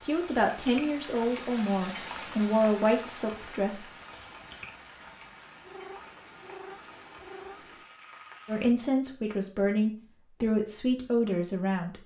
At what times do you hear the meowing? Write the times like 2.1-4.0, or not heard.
5.6-7.8.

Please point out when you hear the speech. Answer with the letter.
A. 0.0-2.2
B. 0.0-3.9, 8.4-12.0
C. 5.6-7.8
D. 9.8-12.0
B.